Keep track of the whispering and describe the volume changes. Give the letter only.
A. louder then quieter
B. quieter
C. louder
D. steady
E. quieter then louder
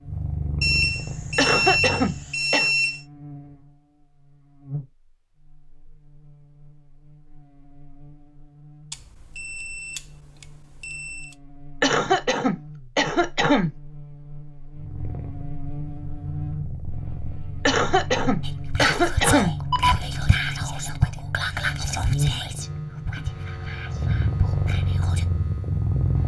B.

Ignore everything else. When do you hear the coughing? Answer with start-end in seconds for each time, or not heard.
1.4-2.7, 11.8-13.7, 17.6-19.6.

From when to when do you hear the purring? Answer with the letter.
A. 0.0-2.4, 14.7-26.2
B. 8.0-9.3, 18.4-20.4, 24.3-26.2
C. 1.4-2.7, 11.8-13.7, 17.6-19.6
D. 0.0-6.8
A.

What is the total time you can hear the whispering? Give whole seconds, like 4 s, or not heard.
7 s.